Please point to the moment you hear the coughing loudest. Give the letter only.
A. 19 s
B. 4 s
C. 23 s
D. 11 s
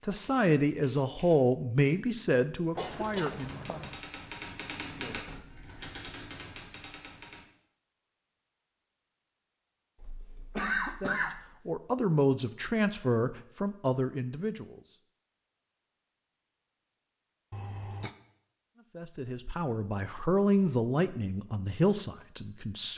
D.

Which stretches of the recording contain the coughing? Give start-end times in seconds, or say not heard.
2.8-4.0, 10.0-11.5, 17.5-18.1.